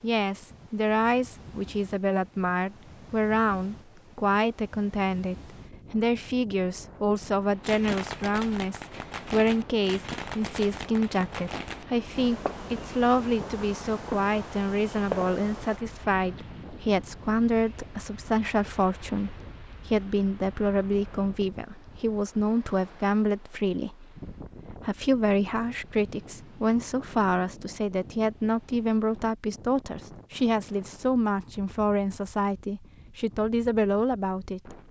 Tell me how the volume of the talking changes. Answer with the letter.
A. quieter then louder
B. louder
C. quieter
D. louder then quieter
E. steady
E.